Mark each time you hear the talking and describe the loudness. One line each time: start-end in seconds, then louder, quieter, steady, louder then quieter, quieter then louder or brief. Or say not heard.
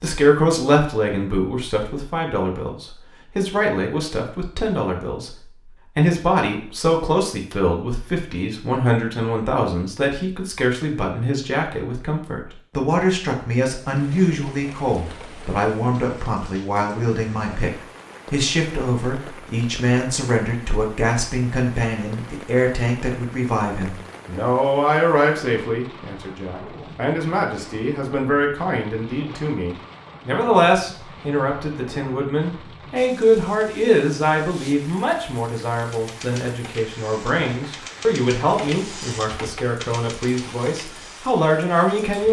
0.0-17.7 steady
18.3-42.2 steady.